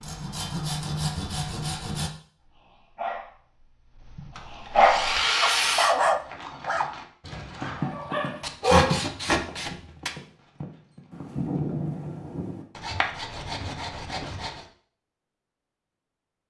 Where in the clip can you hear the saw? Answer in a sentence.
The saw can be heard from 0.0 to 2.1 s, from 4.3 to 6.0 s, from 8.4 to 10.1 s and from 12.8 to 14.7 s.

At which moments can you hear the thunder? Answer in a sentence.
You can hear the thunder from 11.1 to 12.7 s.